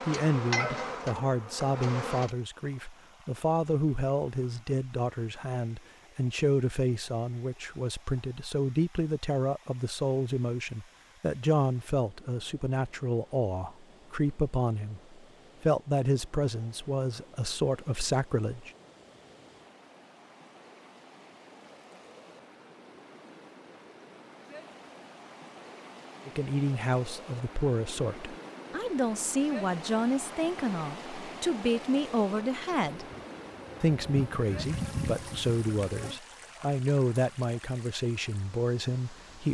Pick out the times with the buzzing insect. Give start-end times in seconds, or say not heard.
0.0-2.3, 33.0-36.2.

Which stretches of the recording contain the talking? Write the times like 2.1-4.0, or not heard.
0.0-18.7, 26.2-33.0, 33.8-39.4.